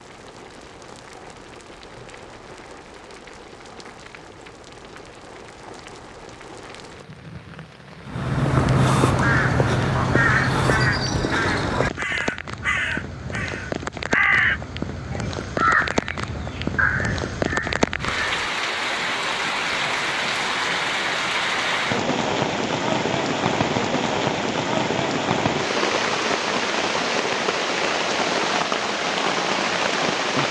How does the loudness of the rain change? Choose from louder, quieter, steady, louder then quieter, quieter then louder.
louder.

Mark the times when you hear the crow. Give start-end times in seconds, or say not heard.
8.1-18.4.